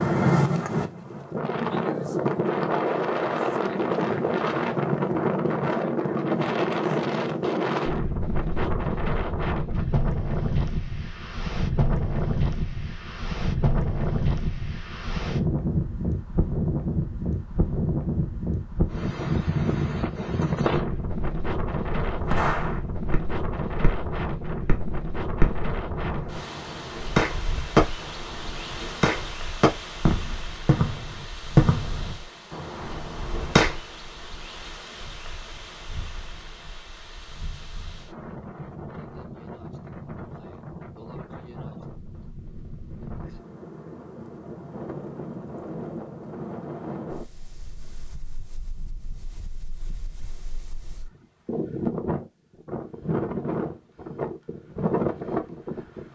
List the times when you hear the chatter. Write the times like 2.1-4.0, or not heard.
not heard.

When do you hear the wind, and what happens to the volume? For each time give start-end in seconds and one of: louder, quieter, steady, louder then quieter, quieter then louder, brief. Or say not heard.
0.0-56.1 quieter then louder.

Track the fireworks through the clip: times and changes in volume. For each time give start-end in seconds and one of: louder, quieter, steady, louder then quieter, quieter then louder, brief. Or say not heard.
22.1-33.8 louder.